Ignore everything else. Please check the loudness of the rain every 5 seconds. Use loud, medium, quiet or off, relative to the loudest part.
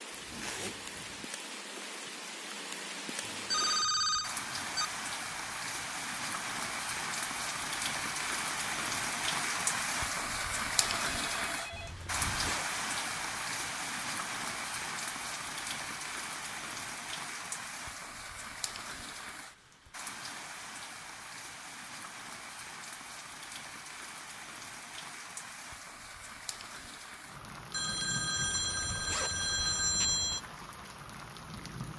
medium, loud, loud, medium, medium, medium, medium.